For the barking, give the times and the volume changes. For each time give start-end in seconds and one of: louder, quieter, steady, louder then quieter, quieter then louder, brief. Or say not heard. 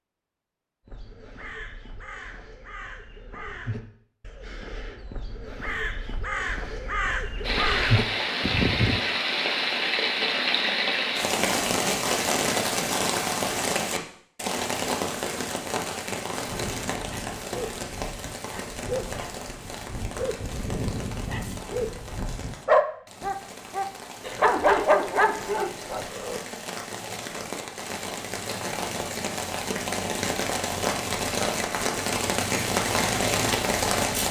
16.4-26.4 louder.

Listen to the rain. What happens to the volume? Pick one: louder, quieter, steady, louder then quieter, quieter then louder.
quieter then louder.